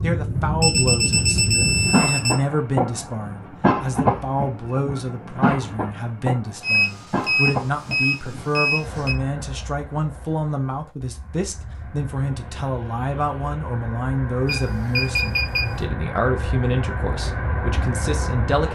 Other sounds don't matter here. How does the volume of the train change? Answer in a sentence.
The loudness of the train goes down, then up.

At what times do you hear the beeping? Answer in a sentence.
The beeping can be heard from 0.6 to 2.4 s, from 6.6 to 9.2 s and from 14.4 to 15.8 s.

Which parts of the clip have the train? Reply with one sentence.
You can hear the train from 0.0 to 18.7 s.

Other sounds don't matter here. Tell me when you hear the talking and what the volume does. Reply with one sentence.
You can hear the talking from 0.0 to 18.7 s, at a steady volume.